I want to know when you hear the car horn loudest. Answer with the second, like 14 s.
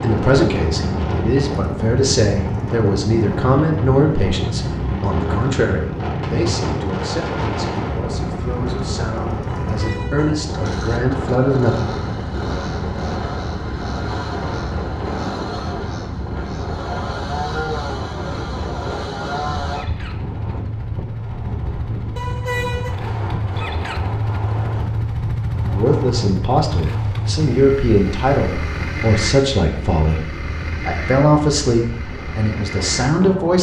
23 s.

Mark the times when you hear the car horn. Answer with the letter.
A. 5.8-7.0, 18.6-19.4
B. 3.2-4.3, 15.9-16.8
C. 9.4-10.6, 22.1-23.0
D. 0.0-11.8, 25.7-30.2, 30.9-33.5
C.